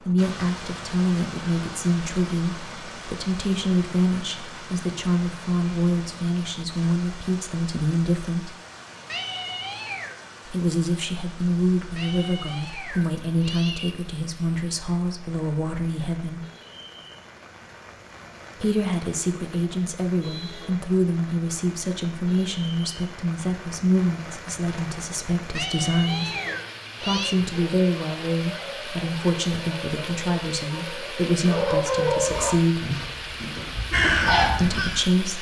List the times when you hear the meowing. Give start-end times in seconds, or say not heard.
9.1-10.2, 11.9-13.9, 25.6-27.4.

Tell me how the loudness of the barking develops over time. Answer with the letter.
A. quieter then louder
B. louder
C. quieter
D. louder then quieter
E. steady
D.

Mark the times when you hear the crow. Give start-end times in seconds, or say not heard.
33.9-35.1.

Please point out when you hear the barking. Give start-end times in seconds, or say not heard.
27.0-34.5.